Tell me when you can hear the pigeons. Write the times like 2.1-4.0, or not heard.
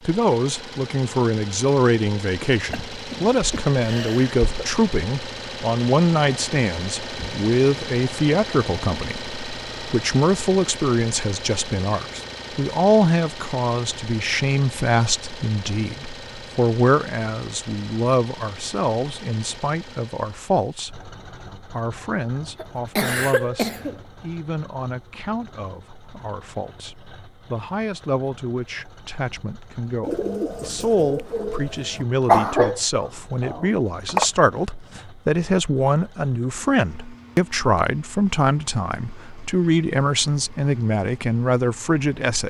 30.0-32.0.